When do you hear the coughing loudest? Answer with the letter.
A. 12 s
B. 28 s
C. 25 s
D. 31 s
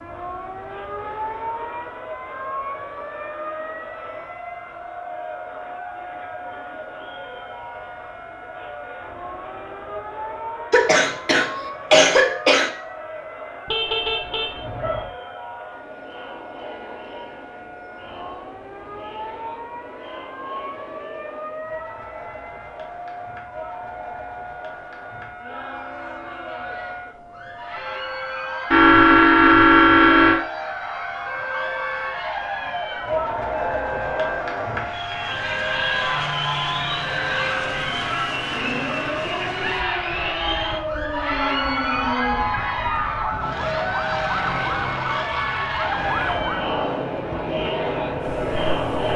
A.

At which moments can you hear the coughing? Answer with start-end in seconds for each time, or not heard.
10.7-12.7.